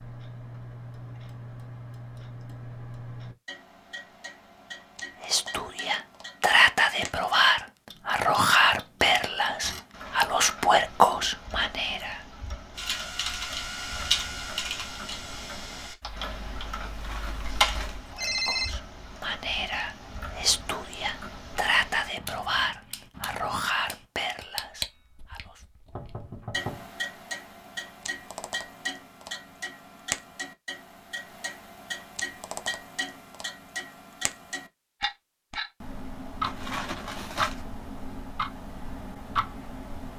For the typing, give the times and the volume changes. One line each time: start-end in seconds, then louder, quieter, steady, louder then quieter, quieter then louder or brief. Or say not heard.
12.8-18.4 quieter then louder.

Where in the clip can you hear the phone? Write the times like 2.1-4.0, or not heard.
9.8-10.3, 16.9-18.8, 36.5-37.5.